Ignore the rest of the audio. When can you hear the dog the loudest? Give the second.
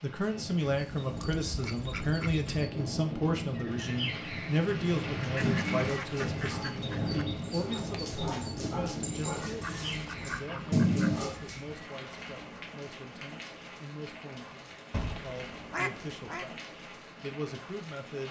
11 s.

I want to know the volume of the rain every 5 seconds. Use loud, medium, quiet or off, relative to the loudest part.
loud, loud, medium, medium.